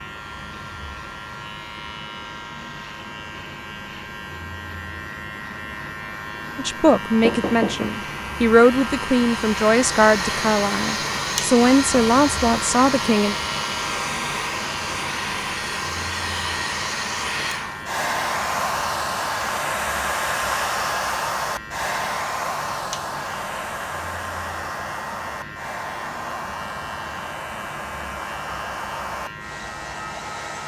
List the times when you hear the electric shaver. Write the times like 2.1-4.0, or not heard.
0.0-30.6.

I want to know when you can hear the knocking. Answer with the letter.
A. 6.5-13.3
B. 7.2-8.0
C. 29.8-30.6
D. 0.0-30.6
B.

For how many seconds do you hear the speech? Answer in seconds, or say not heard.
7 s.